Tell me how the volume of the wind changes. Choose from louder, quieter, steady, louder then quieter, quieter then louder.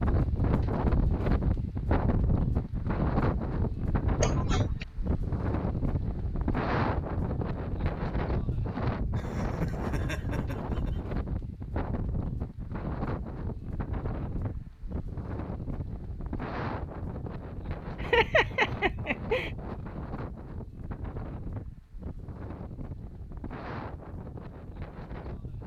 quieter.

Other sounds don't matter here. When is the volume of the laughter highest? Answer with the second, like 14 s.
18 s.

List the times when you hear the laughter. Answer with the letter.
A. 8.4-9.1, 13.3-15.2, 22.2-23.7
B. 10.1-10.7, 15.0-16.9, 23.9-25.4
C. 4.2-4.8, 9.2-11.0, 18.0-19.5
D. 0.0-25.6
C.